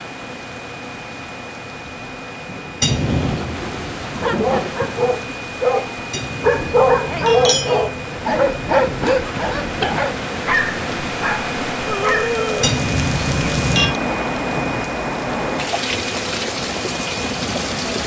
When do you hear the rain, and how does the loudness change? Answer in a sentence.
The rain can be heard from 0.0 to 18.0 s, getting louder.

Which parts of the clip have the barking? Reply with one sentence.
You can hear the barking from 4.2 to 12.3 s.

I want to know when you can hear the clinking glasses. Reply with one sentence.
The clinking glasses can be heard from 2.8 to 3.5 s, from 6.1 to 7.8 s and from 12.6 to 14.0 s.